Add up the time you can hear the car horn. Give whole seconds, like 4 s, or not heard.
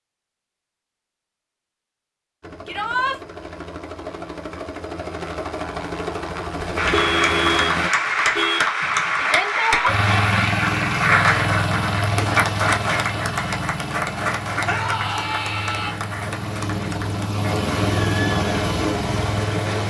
2 s.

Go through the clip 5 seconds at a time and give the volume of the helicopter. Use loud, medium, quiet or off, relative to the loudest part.
medium, loud, loud, loud.